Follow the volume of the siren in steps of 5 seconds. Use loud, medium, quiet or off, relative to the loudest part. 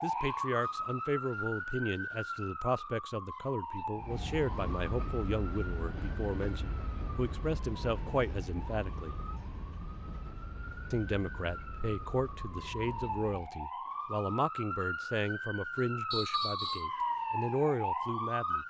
loud, quiet, medium, loud.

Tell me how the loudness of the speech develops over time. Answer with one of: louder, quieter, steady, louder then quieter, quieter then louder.
steady.